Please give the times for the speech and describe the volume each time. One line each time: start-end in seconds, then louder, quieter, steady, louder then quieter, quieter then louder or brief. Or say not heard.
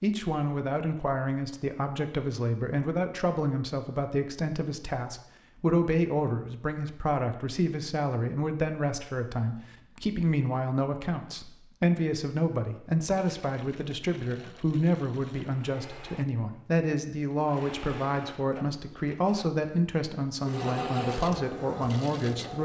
0.0-22.5 steady.